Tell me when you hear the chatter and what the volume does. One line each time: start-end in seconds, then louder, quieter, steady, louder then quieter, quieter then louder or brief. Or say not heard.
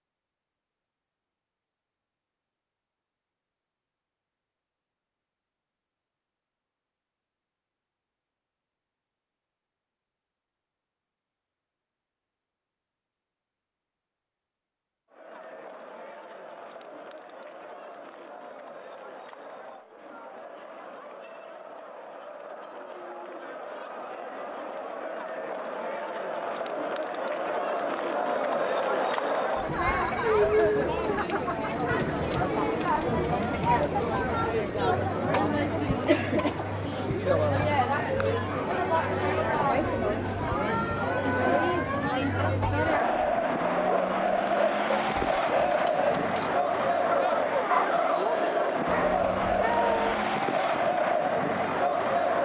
15.1-52.4 louder.